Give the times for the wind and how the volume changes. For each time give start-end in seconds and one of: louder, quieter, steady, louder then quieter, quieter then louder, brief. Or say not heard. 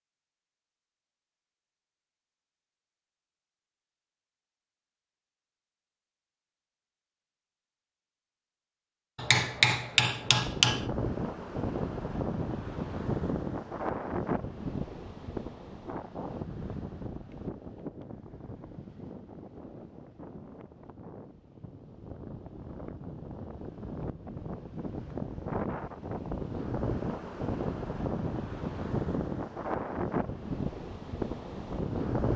10.2-32.3 quieter then louder.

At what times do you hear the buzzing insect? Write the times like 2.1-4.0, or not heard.
not heard.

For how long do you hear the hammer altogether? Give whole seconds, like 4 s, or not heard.
2 s.